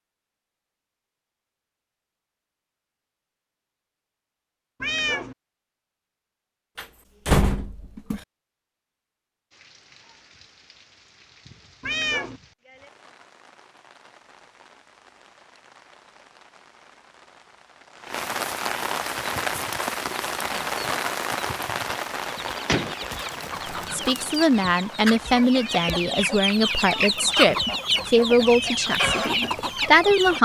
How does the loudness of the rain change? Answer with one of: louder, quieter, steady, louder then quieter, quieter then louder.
louder then quieter.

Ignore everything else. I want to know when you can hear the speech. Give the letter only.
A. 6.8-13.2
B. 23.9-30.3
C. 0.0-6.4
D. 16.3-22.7
B.